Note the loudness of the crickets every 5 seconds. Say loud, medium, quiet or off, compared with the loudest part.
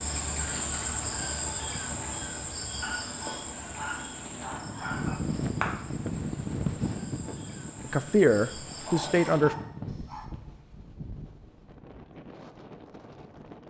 loud, medium, off.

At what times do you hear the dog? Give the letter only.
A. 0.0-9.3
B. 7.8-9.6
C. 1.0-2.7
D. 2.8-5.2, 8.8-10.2
D.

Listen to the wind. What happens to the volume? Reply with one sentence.
The volume of the wind goes up, then down.